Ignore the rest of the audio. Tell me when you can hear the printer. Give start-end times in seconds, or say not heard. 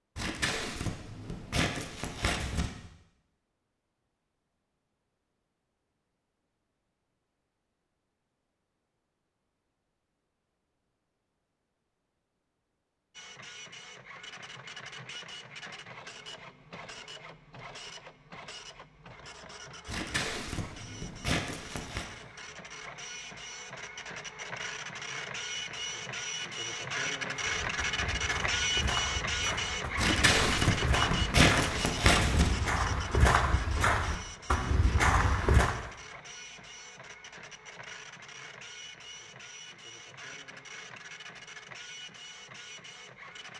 13.1-43.5.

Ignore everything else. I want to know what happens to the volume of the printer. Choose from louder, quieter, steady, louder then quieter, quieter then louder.
louder then quieter.